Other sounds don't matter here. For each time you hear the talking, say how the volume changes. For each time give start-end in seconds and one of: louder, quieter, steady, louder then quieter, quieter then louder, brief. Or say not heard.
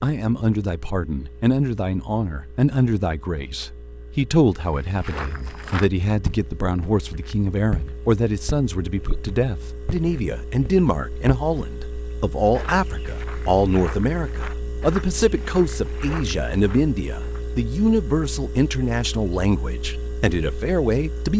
0.0-21.3 steady.